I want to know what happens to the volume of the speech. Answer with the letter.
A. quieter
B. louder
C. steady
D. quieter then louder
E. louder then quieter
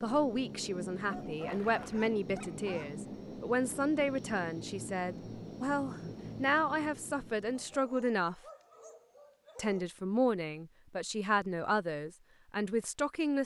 C.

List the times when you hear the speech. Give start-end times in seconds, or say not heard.
0.0-8.4, 9.6-13.4.